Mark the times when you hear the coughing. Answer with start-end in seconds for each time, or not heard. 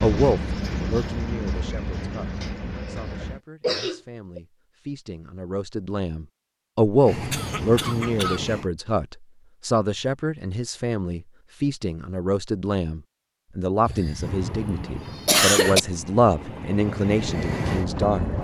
2.4-4.4, 7.3-8.6, 13.8-15.8.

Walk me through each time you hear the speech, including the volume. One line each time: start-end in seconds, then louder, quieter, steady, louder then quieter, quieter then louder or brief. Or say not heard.
0.0-18.3 louder.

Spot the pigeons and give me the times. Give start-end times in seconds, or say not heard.
not heard.